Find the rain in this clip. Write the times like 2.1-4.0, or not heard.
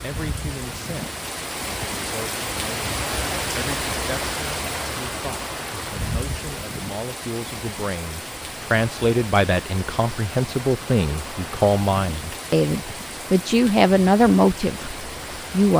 0.0-15.7.